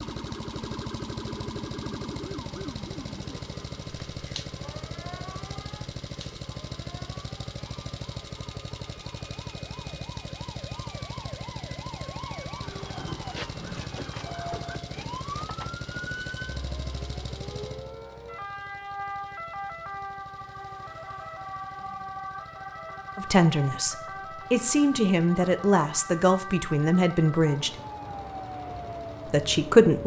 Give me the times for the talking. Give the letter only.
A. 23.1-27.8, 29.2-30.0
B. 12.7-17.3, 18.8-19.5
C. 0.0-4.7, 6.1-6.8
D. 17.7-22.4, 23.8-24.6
A.